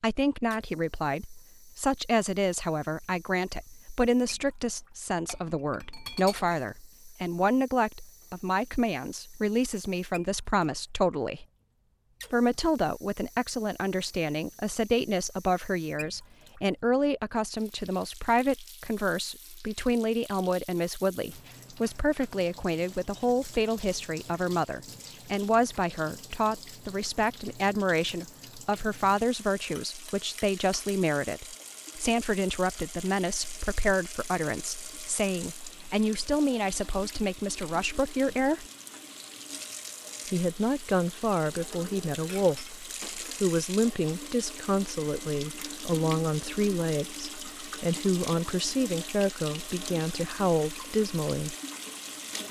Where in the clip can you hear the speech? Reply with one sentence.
You can hear the speech from 0.0 to 11.4 s, from 12.3 to 38.6 s and from 40.2 to 51.5 s.